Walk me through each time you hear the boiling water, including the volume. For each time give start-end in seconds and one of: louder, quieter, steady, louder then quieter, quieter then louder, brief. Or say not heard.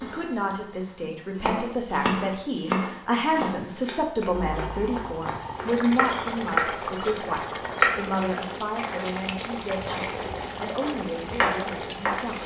4.3-12.4 steady.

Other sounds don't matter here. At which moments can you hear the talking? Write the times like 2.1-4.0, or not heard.
0.0-12.4.